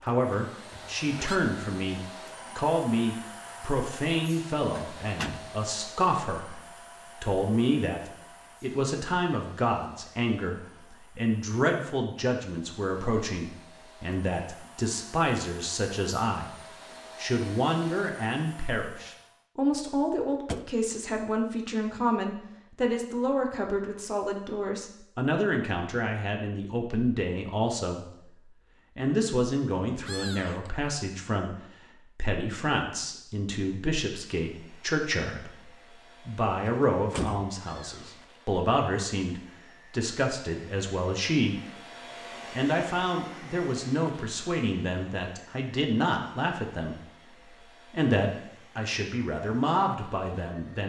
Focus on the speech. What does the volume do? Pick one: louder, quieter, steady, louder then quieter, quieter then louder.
steady.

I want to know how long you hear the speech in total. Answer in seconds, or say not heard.
51 s.